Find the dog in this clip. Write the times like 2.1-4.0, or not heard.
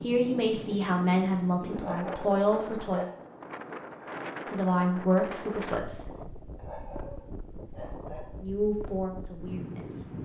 1.8-3.3, 6.5-8.3.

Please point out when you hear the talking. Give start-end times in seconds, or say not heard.
0.0-3.0, 4.5-6.0, 8.4-10.2.